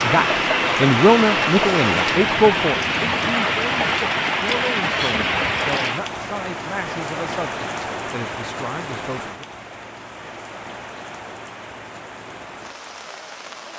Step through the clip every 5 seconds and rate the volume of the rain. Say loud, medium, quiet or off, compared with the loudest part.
loud, medium, quiet.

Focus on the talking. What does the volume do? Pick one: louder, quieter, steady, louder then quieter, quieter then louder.
quieter.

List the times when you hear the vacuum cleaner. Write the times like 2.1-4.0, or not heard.
0.0-2.2.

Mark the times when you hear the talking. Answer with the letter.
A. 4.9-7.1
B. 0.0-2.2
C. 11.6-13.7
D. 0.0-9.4
D.